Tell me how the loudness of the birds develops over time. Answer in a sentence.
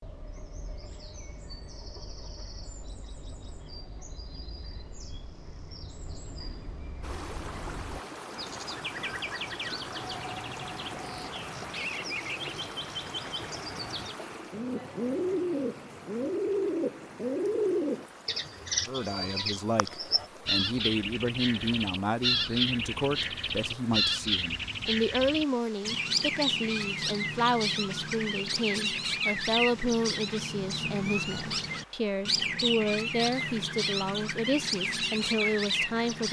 The loudness of the birds goes up.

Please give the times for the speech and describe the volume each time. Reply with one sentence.
The speech can be heard from 18.9 to 36.2 s, at a steady volume.